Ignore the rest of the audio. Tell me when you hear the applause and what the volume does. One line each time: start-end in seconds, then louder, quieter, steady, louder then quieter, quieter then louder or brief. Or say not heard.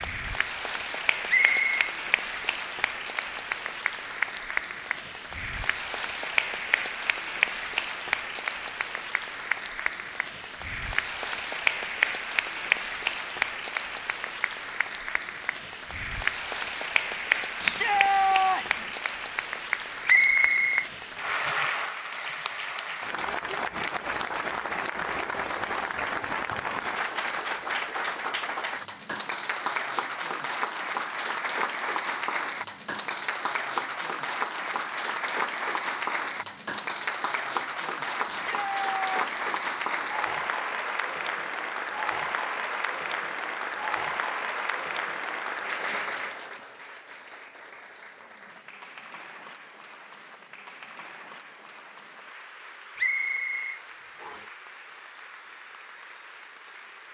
0.0-57.0 quieter.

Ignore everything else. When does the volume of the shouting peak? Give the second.
18 s.